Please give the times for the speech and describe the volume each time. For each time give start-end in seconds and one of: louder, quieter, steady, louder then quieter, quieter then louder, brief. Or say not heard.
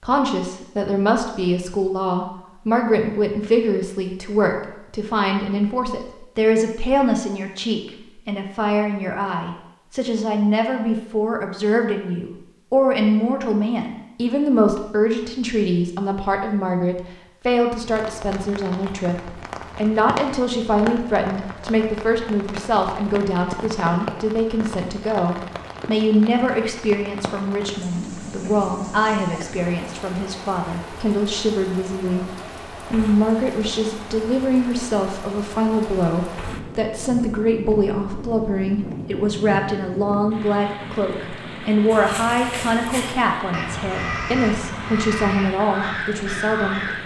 0.0-32.2 steady
32.9-46.8 steady.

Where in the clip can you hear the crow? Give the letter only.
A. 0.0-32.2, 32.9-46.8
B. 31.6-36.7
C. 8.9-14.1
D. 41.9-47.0
D.